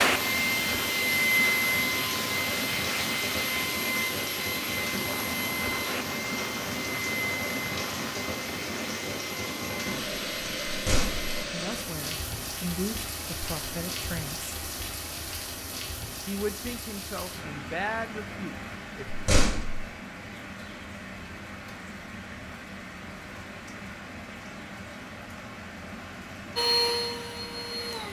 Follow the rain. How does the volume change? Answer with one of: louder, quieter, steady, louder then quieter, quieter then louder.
quieter.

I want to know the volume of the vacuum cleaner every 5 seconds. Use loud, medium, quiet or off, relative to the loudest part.
loud, medium, off, off, off, loud.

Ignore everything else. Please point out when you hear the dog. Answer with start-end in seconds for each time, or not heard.
not heard.